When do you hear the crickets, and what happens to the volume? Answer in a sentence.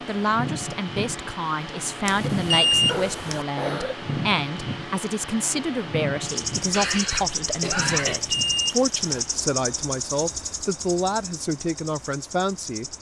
You can hear the crickets from 6.2 to 12.9 s, getting quieter.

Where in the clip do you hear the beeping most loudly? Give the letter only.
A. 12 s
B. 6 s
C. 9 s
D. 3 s
D.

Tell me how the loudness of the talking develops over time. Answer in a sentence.
The volume of the talking stays about the same.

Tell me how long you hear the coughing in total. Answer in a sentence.
You can hear the coughing for 3 seconds altogether.